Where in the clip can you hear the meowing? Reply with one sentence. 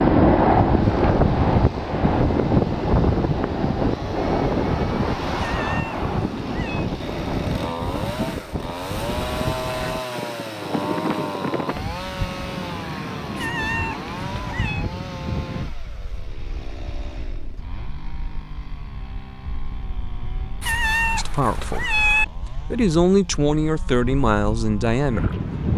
The meowing can be heard from 5.3 to 6.9 s, from 13.3 to 14.8 s and from 20.6 to 22.2 s.